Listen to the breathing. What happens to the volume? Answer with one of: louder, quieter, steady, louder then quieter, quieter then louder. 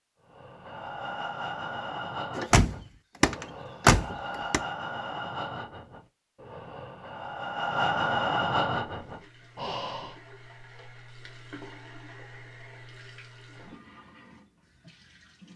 quieter then louder.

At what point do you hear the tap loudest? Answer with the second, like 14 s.
12 s.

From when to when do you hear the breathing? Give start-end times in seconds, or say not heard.
0.2-10.2.